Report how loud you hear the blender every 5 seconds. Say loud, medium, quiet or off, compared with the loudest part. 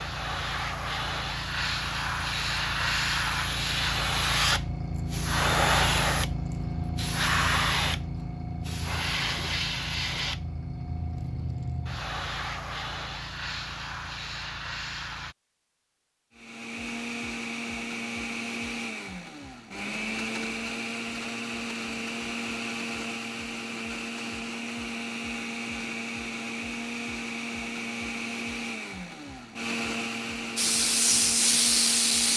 off, off, off, loud, loud, loud, loud.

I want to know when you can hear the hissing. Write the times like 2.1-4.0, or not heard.
0.0-15.3, 30.6-32.3.